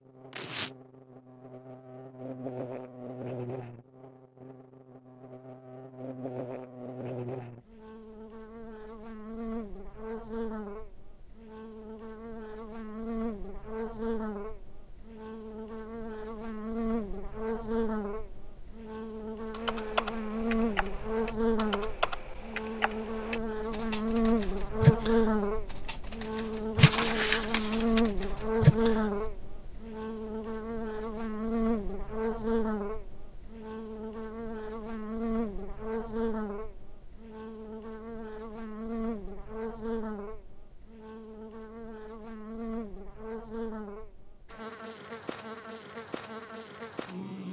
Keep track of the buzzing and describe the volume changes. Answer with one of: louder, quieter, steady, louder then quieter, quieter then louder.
louder then quieter.